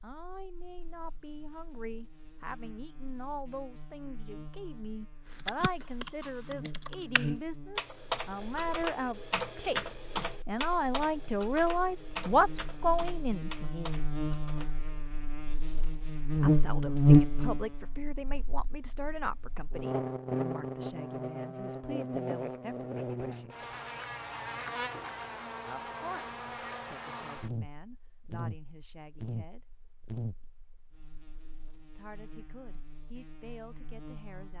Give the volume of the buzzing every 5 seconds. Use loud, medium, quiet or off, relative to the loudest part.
quiet, quiet, quiet, loud, medium, quiet, quiet.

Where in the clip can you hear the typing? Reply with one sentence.
The typing can be heard from 5.3 to 15.1 s.